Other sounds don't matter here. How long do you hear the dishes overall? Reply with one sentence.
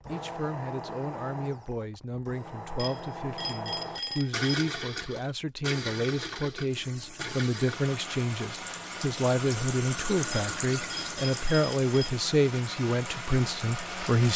You can't hear the dishes here.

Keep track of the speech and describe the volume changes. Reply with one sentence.
The loudness of the speech goes up.